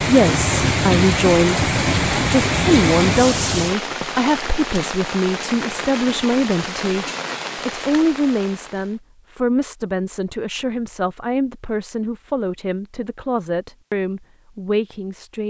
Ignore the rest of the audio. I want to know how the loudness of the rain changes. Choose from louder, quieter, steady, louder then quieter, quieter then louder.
quieter.